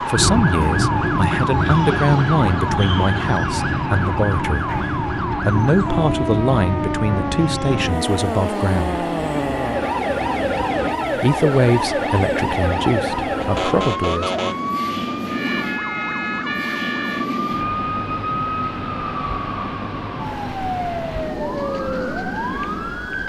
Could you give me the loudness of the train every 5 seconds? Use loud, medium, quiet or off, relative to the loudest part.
loud, loud, loud, medium, medium.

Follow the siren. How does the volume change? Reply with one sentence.
The loudness of the siren stays about the same.